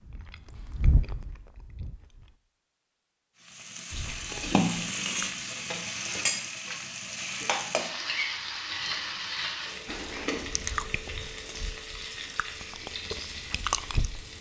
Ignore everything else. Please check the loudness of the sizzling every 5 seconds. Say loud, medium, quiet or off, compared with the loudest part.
loud, loud, medium.